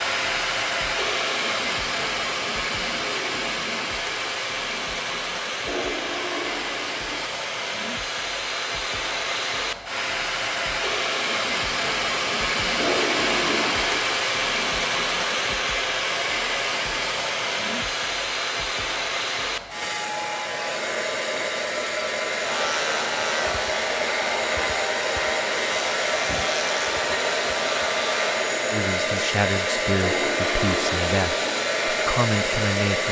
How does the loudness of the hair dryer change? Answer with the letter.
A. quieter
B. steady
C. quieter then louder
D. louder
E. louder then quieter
B.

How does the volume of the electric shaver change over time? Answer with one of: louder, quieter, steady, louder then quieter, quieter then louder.
steady.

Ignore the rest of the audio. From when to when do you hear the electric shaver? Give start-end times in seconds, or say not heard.
22.4-28.4.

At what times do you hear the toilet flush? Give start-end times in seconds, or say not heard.
5.7-7.3, 12.8-14.1, 30.0-31.6.